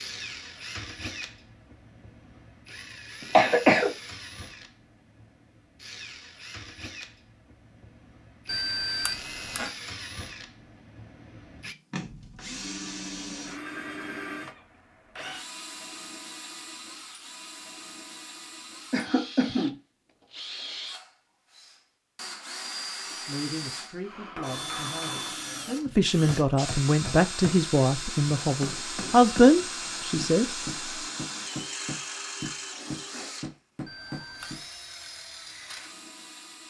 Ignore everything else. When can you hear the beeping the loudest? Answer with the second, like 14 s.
9 s.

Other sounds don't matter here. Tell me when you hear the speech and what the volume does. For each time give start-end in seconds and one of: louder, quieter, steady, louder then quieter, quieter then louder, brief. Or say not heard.
23.2-30.4 louder.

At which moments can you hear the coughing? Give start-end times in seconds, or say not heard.
3.3-3.9, 18.9-19.8.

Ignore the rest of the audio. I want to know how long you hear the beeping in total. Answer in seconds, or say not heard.
2 s.